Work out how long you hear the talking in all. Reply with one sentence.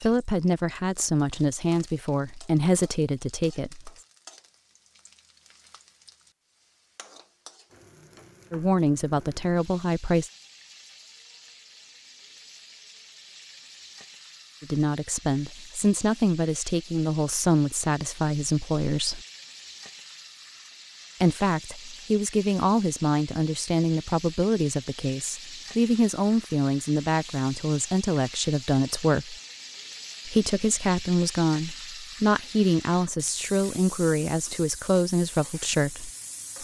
You can hear the talking for 25 seconds altogether.